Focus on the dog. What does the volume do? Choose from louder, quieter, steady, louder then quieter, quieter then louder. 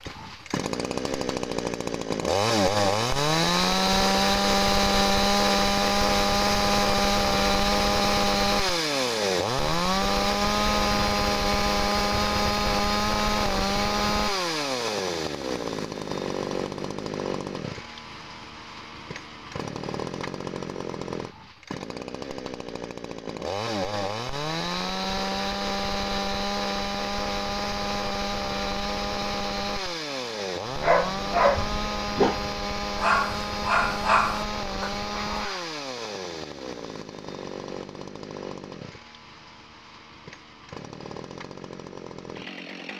quieter.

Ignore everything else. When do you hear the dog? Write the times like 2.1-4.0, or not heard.
30.7-35.7.